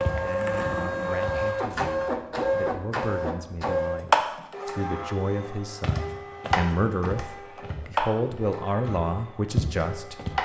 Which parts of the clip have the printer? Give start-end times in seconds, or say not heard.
0.0-10.4.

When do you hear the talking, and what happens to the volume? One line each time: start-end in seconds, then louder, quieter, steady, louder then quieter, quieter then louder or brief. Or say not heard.
0.1-10.4 louder.